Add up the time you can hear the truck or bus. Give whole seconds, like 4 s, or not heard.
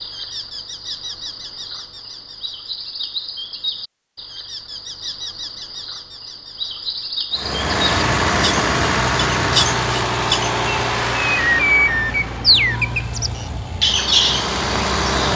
8 s.